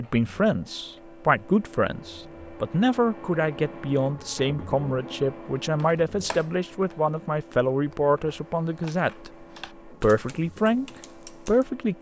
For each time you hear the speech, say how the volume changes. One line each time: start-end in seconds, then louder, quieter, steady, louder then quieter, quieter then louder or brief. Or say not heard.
0.0-11.9 steady.